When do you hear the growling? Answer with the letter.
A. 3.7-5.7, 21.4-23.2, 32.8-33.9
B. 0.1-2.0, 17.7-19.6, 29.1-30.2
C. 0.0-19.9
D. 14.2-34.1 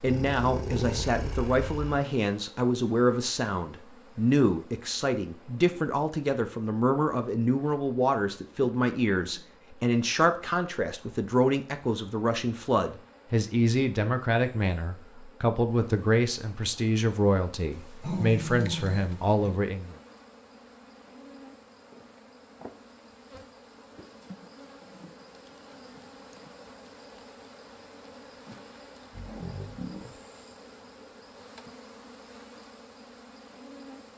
B.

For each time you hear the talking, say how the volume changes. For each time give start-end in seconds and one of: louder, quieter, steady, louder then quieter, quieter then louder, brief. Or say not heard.
0.0-19.9 steady.